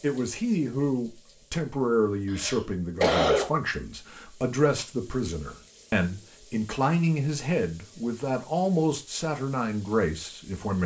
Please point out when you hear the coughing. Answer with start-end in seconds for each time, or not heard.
2.3-3.5.